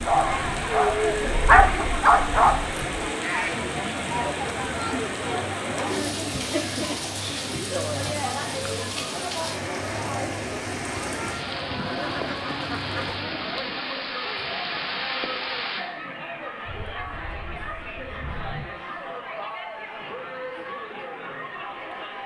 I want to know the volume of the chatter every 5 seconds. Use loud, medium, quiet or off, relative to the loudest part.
loud, loud, medium, medium, medium.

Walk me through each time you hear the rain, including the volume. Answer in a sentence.
You can hear the rain from 0.0 to 15.8 s, at a steady volume.